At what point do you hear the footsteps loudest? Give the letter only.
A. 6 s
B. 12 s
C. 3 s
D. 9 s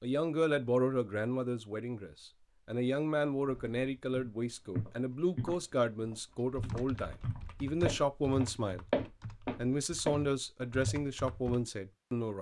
D.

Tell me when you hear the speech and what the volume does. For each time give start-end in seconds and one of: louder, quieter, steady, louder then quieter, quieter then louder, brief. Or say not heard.
0.0-12.3 steady.